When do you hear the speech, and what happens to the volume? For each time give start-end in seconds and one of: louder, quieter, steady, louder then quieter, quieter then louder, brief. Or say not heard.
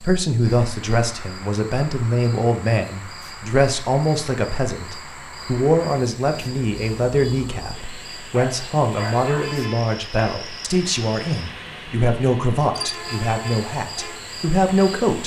0.0-15.2 steady.